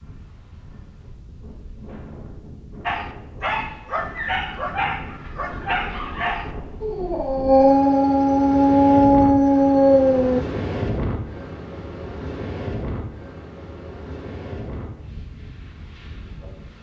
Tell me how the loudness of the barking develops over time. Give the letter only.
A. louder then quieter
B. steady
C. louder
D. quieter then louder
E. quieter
C.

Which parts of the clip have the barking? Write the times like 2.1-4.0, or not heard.
2.9-10.4.